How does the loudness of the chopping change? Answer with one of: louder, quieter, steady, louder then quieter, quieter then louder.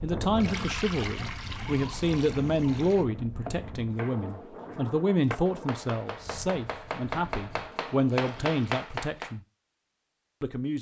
louder.